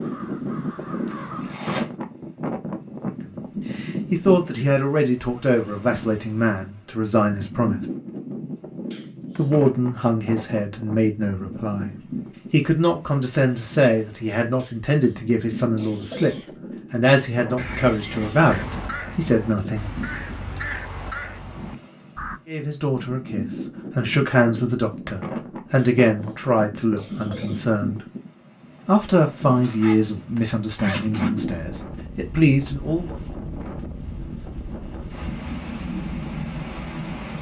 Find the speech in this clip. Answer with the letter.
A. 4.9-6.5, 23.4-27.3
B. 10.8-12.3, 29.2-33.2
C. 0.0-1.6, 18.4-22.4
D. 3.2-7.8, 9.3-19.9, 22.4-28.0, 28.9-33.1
D.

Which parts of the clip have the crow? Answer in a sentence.
You can hear the crow from 0.0 to 1.6 s and from 18.4 to 22.4 s.